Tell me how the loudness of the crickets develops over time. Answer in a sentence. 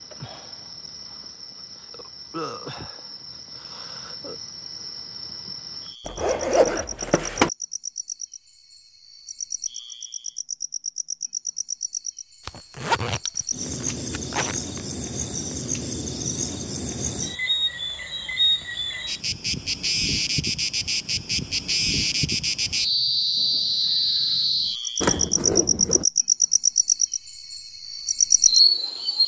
The loudness of the crickets goes up.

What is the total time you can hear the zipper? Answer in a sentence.
You can hear the zipper for 5 seconds altogether.